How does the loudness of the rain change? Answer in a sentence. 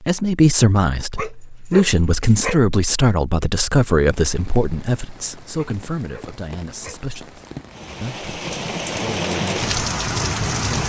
The loudness of the rain goes up.